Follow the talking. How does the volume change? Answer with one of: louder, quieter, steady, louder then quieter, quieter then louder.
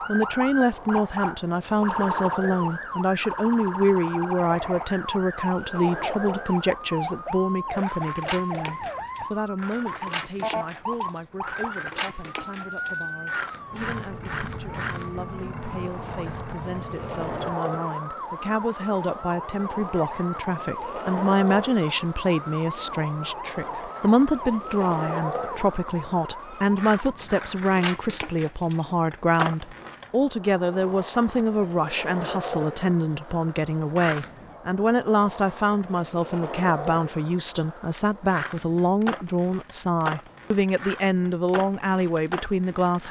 quieter then louder.